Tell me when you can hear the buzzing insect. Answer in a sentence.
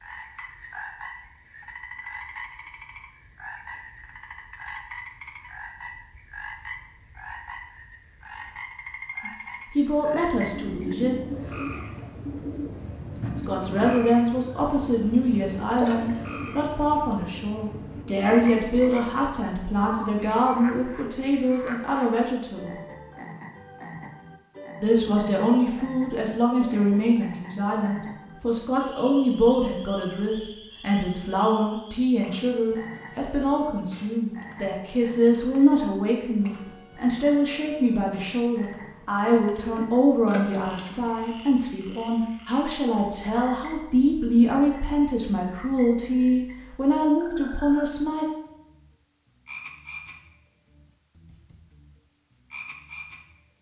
You can't hear the buzzing insect here.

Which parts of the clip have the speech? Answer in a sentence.
The speech can be heard from 9.2 to 11.2 s, from 13.3 to 22.8 s and from 24.8 to 48.2 s.